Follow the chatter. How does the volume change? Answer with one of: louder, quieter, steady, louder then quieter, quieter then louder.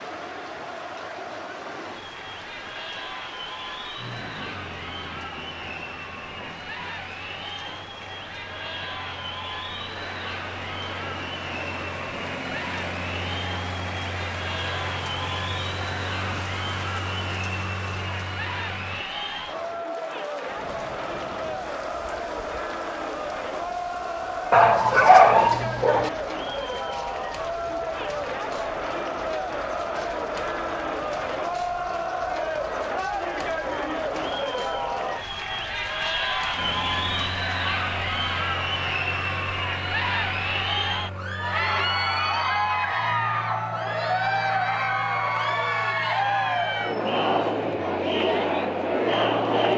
louder.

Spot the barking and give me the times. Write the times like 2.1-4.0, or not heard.
24.5-26.1.